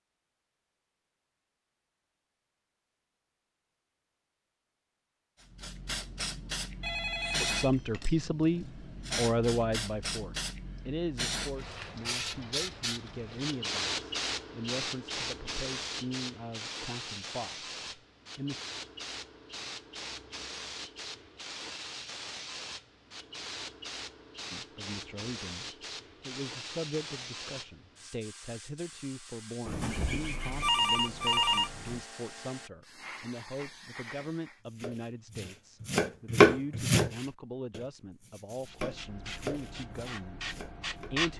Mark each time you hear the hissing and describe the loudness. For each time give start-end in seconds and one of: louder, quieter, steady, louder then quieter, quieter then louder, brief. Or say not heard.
5.4-34.6 quieter
38.6-41.3 brief.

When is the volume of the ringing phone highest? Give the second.
31 s.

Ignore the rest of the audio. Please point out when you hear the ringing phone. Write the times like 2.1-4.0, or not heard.
6.8-7.7, 29.6-32.0.